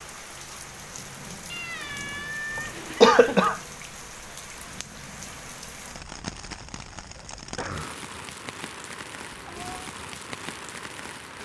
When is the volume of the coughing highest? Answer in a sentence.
The loudest moment of the coughing is at 3 seconds.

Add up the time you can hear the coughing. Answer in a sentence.
The coughing can be heard for 2 seconds in total.